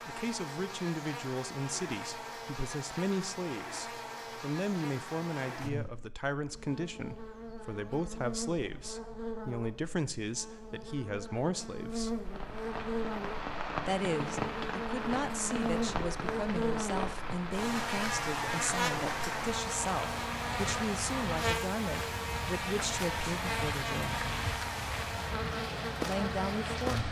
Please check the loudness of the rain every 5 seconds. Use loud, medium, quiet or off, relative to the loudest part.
off, off, loud, loud, loud, loud.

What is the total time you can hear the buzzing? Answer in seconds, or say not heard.
27 s.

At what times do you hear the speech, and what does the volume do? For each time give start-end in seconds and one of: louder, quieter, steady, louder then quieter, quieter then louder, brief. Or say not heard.
0.1-12.2 steady
13.8-24.2 steady
26.0-27.0 brief.